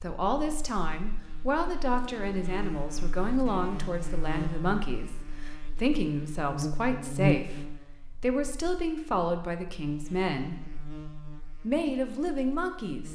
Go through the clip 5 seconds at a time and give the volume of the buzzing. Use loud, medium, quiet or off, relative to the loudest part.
medium, loud, quiet.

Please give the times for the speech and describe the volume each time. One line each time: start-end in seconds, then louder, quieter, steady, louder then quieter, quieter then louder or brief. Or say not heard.
0.0-10.6 steady
11.6-13.1 brief.